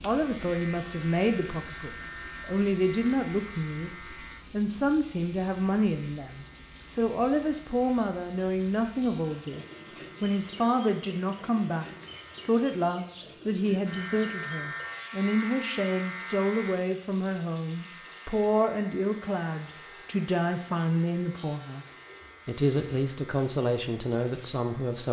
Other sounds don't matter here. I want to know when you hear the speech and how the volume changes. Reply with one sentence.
You can hear the speech from 0.0 to 21.9 s, at a steady volume; and briefly from 22.4 to 25.0 s.